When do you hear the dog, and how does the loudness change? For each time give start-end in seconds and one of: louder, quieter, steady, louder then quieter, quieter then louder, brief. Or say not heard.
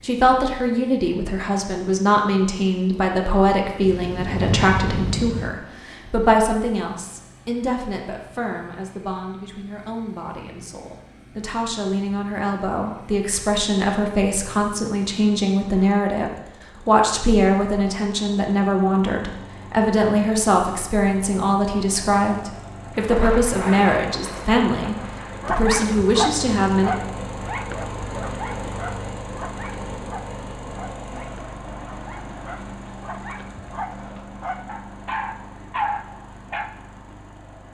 25.4-36.7 quieter then louder.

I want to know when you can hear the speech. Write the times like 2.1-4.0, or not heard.
0.0-26.9.